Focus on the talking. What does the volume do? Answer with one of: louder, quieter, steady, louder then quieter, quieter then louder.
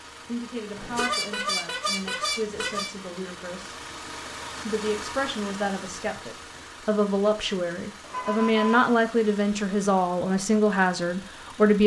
louder.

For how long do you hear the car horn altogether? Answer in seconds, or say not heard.
3 s.